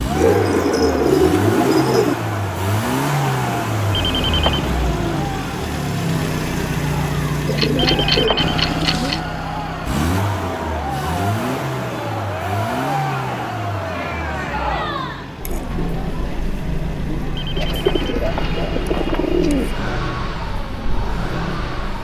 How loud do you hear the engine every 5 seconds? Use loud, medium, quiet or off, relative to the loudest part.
loud, loud, loud, medium, medium.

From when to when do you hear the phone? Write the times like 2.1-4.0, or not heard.
3.9-4.7, 7.8-8.7, 17.4-19.4.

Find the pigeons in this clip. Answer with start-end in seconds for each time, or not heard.
0.1-2.1, 7.5-9.2, 17.6-19.9.